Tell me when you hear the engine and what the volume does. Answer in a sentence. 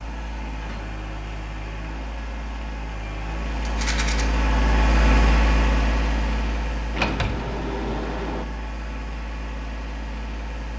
You can hear the engine from 0.0 to 10.7 s, getting louder then quieter.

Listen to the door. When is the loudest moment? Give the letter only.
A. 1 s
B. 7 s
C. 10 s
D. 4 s
B.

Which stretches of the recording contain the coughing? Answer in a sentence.
The coughing can't be heard in this clip.